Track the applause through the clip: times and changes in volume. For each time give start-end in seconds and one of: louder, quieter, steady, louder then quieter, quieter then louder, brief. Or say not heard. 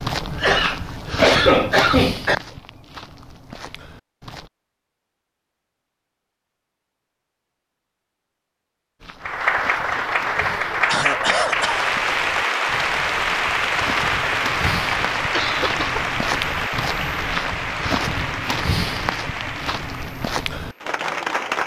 9.2-21.6 quieter.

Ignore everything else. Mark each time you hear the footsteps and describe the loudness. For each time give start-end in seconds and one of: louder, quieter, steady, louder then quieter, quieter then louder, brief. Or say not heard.
0.0-4.5 louder then quieter
9.0-20.8 louder.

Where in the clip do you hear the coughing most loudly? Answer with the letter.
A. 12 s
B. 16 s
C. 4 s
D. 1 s
D.